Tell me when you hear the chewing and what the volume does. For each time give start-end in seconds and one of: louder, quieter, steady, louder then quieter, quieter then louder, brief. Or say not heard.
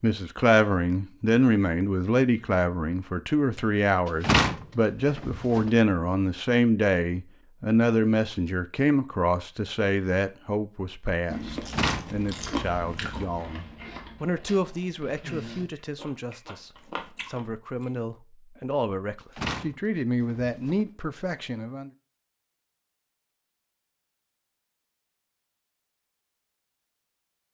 11.3-17.9 quieter then louder.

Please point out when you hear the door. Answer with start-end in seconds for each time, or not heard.
4.2-5.7, 11.6-13.2, 19.4-20.9.